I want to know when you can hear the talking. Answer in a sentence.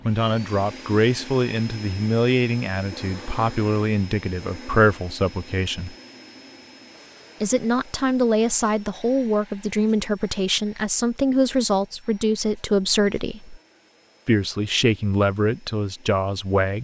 You can hear the talking from 0.1 to 6.0 s, from 7.4 to 13.6 s and from 14.2 to 16.7 s.